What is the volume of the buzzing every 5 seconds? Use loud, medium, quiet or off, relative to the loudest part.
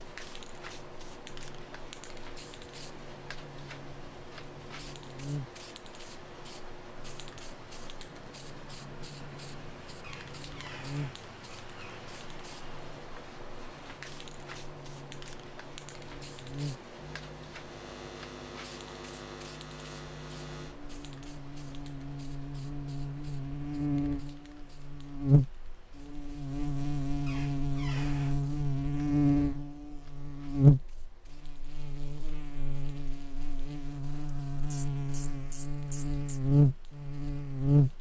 quiet, quiet, quiet, quiet, medium, loud, loud, loud.